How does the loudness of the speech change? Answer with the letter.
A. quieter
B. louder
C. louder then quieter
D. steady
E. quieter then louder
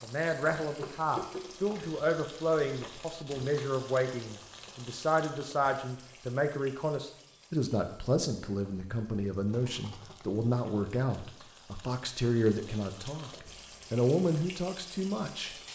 D.